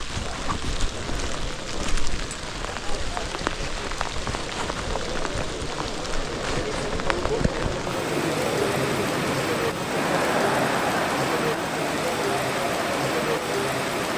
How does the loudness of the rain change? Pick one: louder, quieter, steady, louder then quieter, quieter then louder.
louder.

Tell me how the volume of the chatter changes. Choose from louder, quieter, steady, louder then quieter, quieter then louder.
louder.